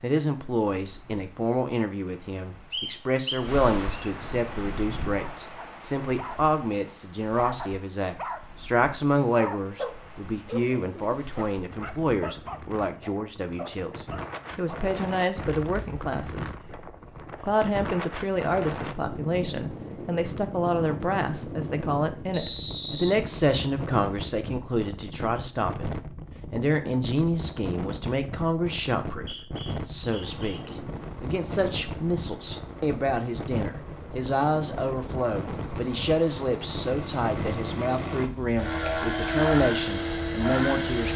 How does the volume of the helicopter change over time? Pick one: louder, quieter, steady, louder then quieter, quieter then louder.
louder.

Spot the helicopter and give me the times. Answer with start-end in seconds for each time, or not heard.
30.0-41.1.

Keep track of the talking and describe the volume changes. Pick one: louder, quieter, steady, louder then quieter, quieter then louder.
steady.